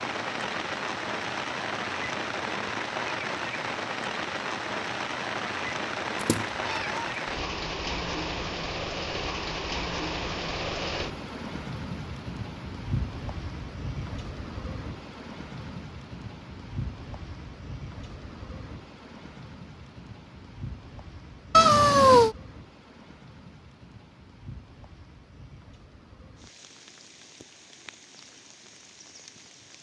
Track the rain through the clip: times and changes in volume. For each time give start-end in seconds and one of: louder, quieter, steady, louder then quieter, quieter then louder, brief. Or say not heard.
0.0-29.7 quieter.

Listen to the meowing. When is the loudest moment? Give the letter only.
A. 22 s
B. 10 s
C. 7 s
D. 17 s
A.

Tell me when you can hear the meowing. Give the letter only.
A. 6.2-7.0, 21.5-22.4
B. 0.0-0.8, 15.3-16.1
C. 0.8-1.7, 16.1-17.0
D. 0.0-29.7
A.